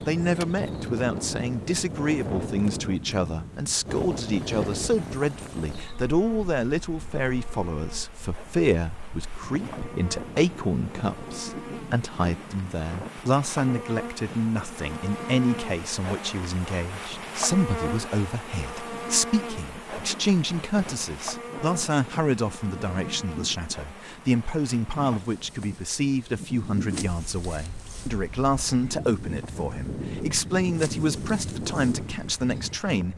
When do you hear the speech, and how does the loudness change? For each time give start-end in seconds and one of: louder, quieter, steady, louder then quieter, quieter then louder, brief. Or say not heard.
0.1-33.1 steady.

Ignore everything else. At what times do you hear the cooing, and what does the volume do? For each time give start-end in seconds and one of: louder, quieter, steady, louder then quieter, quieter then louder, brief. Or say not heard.
not heard.